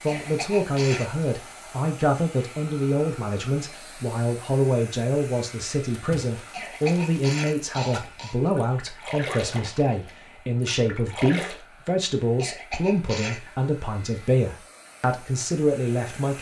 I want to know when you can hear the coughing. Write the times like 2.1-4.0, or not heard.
0.1-1.2, 6.5-8.3, 12.3-13.4.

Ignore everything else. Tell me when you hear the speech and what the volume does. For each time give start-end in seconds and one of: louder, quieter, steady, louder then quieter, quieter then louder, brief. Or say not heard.
0.0-16.3 steady.